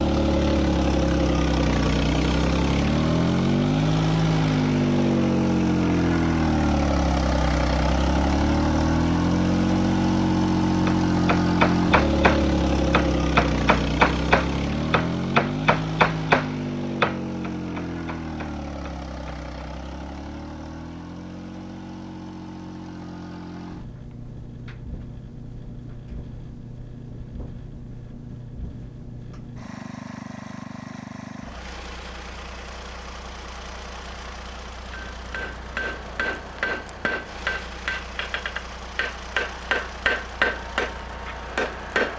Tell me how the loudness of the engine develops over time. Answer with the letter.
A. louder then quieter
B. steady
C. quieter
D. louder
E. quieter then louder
C.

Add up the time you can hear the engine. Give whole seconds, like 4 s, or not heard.
42 s.